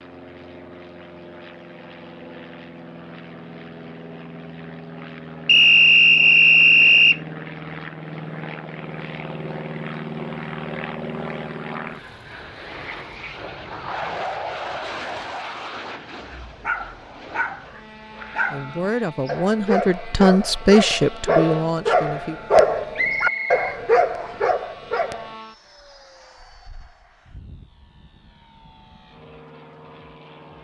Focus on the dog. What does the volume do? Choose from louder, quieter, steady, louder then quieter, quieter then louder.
louder.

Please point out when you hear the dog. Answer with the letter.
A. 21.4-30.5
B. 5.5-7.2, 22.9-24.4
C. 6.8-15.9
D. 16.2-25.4
D.